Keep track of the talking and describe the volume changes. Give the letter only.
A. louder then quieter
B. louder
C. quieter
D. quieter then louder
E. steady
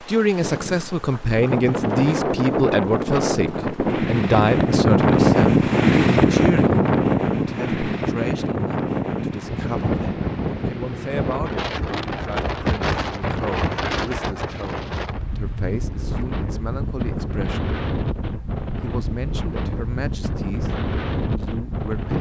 C.